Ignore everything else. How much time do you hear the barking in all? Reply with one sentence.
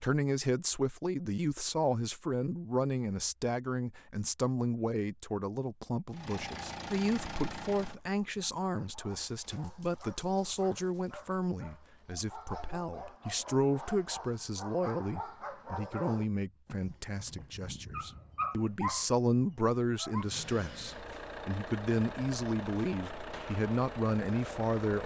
The barking can be heard for 12 seconds in total.